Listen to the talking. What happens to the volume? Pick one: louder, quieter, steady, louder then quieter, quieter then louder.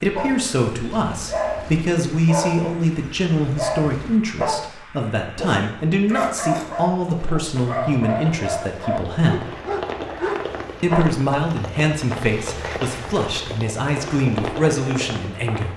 steady.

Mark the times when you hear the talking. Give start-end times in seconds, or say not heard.
0.0-9.5, 10.8-15.7.